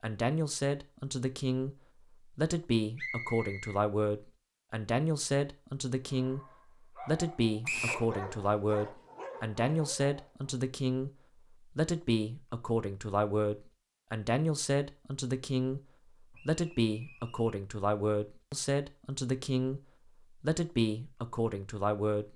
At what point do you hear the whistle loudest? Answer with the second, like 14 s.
8 s.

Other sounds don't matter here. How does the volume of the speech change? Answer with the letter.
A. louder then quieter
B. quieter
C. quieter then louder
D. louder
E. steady
E.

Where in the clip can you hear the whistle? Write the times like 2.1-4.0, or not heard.
3.0-3.8, 7.7-8.1, 16.3-17.6.